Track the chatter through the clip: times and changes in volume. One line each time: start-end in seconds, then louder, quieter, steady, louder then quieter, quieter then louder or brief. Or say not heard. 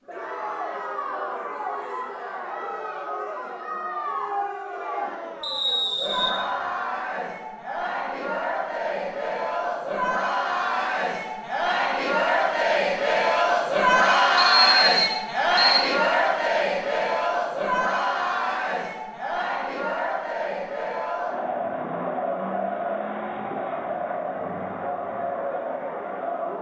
0.1-26.5 louder then quieter.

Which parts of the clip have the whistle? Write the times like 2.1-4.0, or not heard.
5.4-6.3, 14.3-15.8.